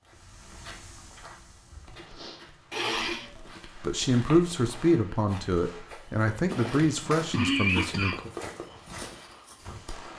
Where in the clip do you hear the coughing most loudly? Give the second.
8 s.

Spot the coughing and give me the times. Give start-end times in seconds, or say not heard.
2.7-3.6, 6.5-8.3.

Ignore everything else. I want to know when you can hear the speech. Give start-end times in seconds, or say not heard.
3.8-8.3.